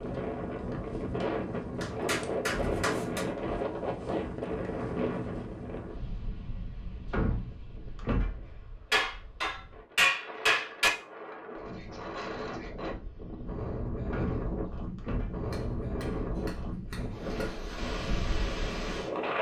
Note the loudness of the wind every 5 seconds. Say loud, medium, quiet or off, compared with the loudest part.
loud, medium, medium, loud.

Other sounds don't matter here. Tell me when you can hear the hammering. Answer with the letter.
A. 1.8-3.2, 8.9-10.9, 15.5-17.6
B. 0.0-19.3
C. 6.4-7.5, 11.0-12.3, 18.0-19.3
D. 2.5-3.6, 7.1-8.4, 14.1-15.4
A.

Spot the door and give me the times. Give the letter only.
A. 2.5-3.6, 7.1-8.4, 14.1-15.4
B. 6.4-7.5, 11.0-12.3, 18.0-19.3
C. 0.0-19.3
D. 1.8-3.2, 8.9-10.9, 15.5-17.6
A.